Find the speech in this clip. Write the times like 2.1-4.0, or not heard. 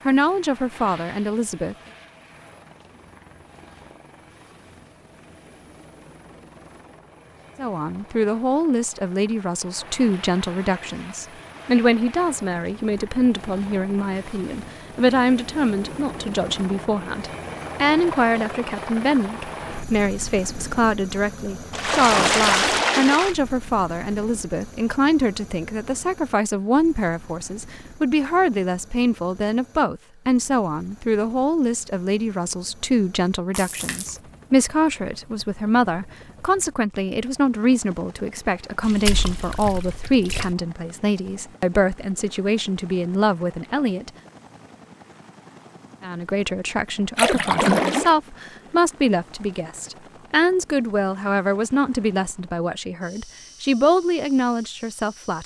0.1-1.8, 7.5-44.1, 46.0-55.4.